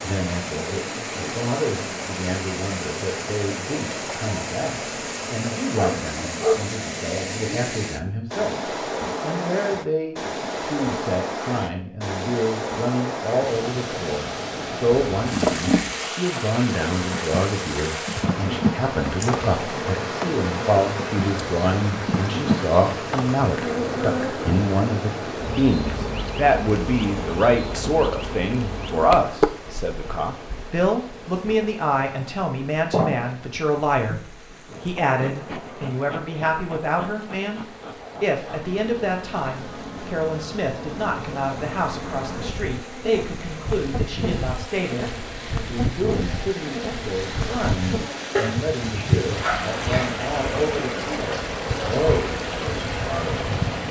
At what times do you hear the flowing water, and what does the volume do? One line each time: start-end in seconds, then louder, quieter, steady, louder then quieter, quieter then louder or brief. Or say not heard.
0.0-53.8 quieter then louder.